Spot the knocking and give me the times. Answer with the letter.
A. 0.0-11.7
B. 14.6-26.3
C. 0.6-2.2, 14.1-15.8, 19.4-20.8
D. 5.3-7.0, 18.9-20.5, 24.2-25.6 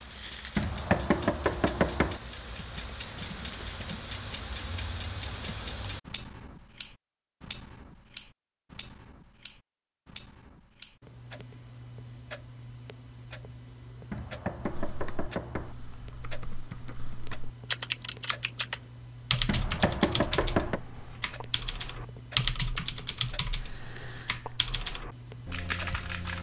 C.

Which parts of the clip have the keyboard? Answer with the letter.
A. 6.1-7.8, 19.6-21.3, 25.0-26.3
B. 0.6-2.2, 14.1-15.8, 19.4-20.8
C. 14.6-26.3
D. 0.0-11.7
C.